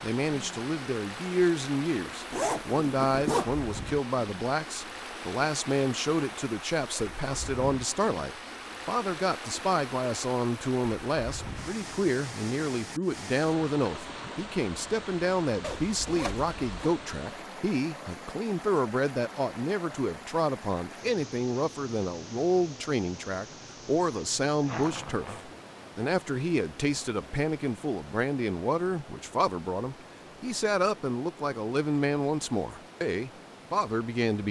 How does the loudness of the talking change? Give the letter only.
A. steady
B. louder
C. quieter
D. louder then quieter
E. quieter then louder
A.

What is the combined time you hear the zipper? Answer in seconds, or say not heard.
3 s.